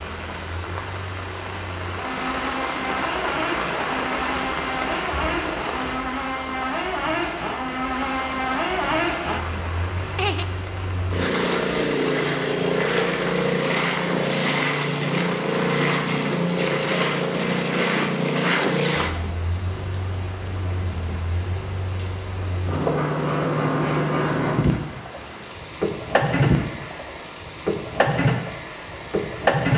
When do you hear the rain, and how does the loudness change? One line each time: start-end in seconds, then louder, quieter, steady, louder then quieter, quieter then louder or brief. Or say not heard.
0.0-29.7 quieter.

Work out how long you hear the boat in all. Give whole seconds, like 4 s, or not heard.
30 s.